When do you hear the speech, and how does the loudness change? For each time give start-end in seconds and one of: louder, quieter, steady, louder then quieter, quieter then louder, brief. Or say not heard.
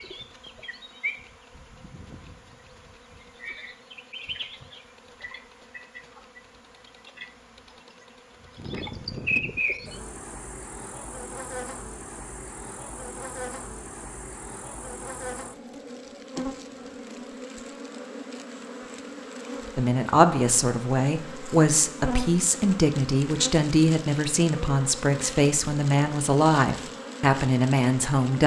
19.8-28.4 steady.